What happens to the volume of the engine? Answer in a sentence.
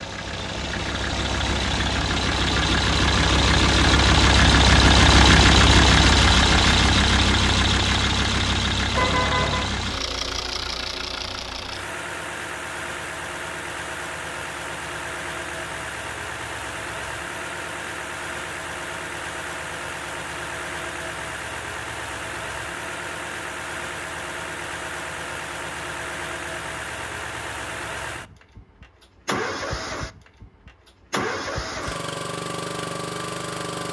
The volume of the engine goes down.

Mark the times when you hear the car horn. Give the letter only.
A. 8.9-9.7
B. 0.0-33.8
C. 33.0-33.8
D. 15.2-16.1
A.